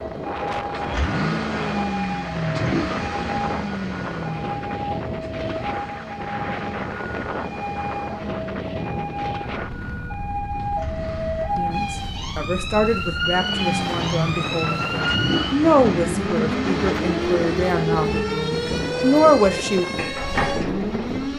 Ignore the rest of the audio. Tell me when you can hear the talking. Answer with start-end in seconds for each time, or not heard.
11.6-19.9.